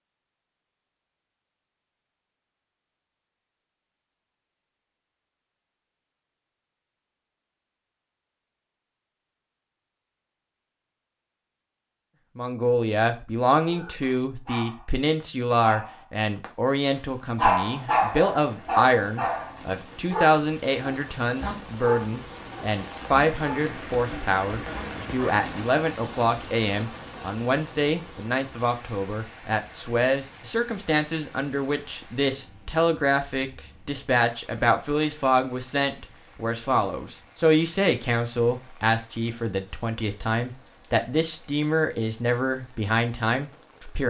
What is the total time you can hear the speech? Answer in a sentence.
The speech can be heard for 32 seconds in total.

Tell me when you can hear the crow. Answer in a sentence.
The crow can't be heard in this clip.